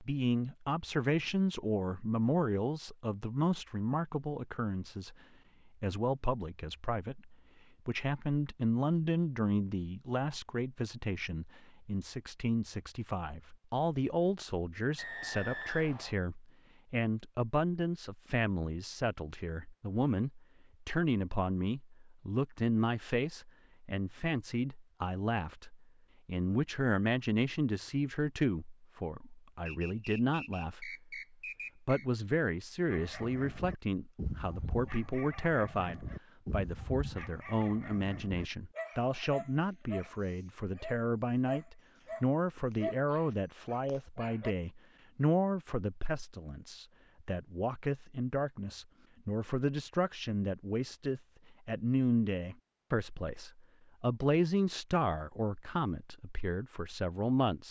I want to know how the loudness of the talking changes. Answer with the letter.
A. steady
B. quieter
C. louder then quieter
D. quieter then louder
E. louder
A.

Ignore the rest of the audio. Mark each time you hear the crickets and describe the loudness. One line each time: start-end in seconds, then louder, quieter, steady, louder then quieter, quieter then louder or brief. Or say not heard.
not heard.